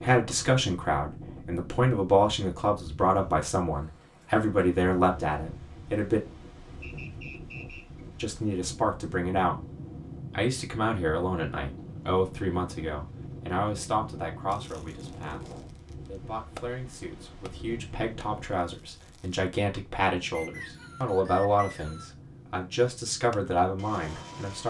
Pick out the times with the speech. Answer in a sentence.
You can hear the speech from 0.0 to 6.2 s, from 8.2 to 9.6 s and from 10.3 to 24.6 s.